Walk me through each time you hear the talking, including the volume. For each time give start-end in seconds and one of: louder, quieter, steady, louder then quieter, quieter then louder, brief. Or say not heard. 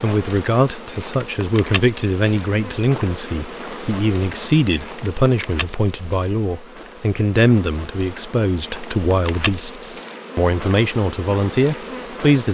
0.0-12.4 steady.